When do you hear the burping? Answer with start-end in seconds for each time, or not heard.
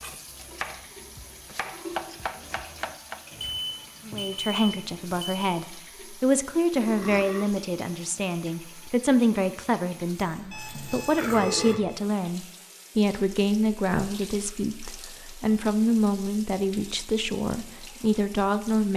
6.8-7.6, 11.2-12.0.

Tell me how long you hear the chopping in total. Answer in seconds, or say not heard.
3 s.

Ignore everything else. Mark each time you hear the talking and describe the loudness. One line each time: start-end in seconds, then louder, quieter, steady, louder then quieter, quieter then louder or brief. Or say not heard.
4.0-18.9 steady.